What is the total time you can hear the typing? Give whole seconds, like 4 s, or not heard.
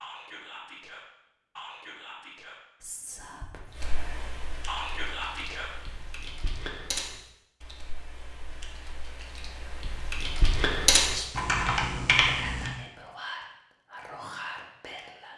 9 s.